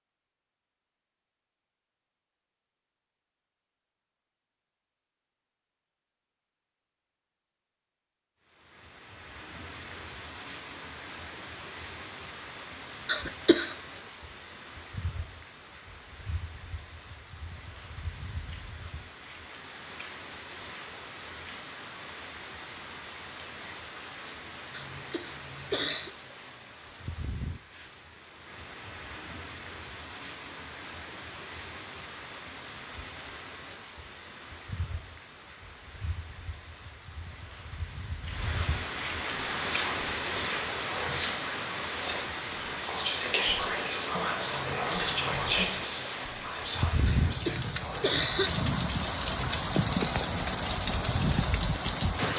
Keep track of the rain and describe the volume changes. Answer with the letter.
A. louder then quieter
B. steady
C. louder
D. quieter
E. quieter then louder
C.